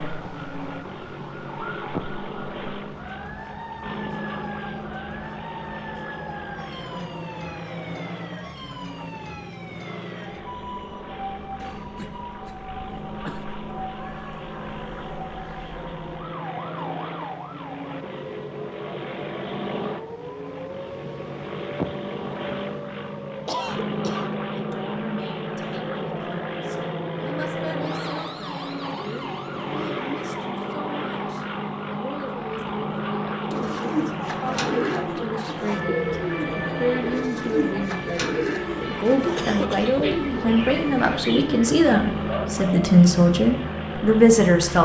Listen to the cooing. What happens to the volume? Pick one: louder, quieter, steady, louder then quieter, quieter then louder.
steady.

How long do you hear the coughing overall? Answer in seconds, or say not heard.
3 s.